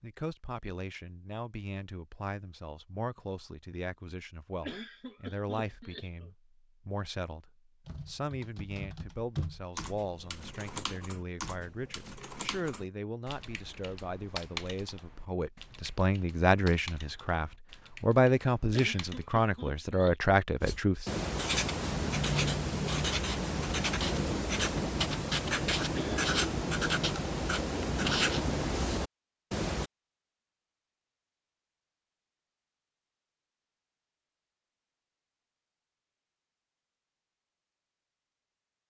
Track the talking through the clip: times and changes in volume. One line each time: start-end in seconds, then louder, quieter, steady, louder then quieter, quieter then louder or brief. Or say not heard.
0.0-21.1 louder.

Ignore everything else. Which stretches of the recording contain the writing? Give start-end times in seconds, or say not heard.
20.6-29.9.